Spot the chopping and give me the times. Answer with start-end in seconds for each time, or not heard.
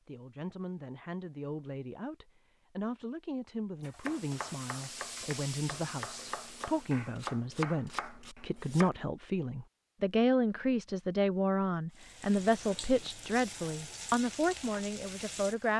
4.0-9.1.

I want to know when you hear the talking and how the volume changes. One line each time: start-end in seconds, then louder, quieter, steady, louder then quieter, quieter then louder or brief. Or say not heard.
0.1-15.7 louder.